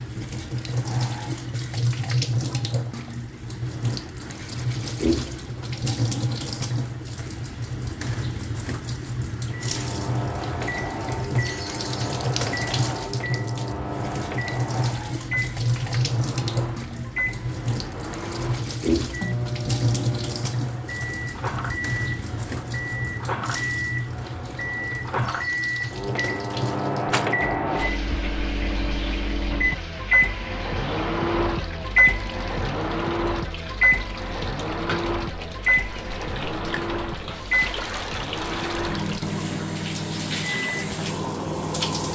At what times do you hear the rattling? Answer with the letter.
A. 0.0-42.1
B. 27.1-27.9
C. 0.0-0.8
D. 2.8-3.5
B.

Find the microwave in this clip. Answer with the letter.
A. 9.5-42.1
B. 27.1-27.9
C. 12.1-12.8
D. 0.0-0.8
A.